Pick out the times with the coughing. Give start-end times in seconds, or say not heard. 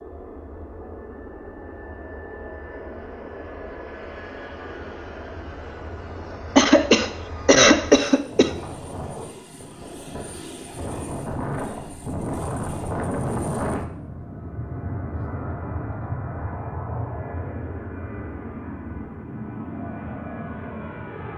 6.5-8.5.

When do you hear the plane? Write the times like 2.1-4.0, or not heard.
0.0-21.3.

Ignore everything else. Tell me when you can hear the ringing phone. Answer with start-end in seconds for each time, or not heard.
not heard.